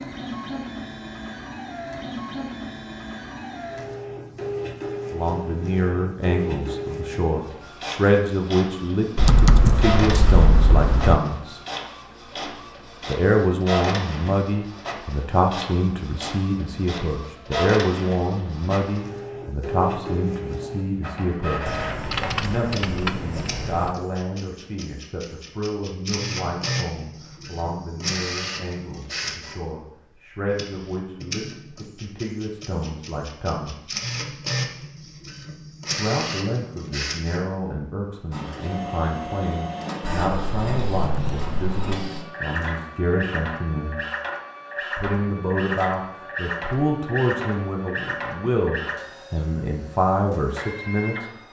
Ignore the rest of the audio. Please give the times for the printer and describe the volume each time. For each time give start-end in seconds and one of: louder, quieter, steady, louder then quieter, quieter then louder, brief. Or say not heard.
0.0-51.4 steady.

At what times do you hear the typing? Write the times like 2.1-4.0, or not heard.
9.2-11.2, 21.6-23.9, 40.0-42.0.